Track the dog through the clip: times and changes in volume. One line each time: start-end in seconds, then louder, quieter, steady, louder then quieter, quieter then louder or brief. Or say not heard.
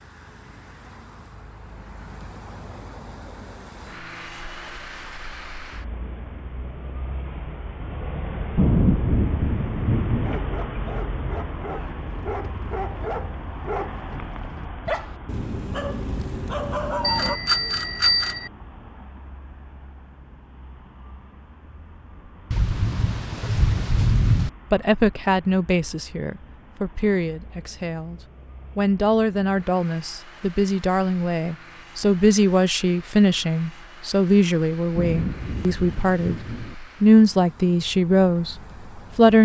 10.2-17.4 louder.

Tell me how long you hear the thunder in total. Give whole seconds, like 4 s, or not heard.
6 s.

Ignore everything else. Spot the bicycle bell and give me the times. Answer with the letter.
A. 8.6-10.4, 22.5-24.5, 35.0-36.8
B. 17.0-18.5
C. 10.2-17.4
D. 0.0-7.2
B.